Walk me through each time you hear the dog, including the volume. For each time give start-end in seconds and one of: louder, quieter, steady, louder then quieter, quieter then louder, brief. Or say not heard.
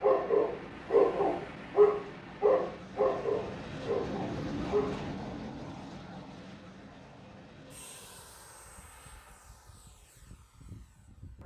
0.0-5.1 quieter.